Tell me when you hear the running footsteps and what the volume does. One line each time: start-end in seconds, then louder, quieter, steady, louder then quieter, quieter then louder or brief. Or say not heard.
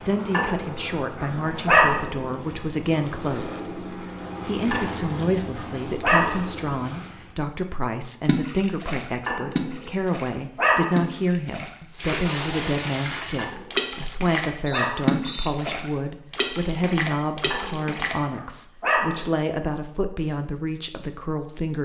not heard.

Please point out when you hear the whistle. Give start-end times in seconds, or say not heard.
14.7-15.5.